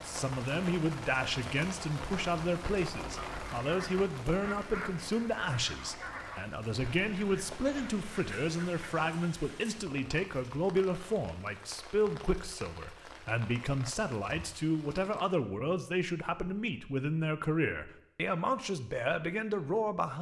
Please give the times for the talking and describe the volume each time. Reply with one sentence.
You can hear the talking from 0.0 to 20.1 s, at a steady volume.